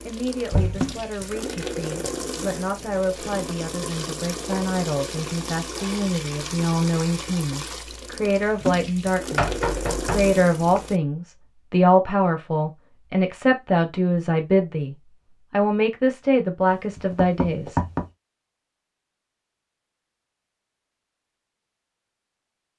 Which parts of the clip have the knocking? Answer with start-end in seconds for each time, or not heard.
0.5-0.9, 9.3-10.8, 16.9-18.1.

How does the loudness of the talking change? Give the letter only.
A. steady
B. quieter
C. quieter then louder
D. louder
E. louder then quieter
D.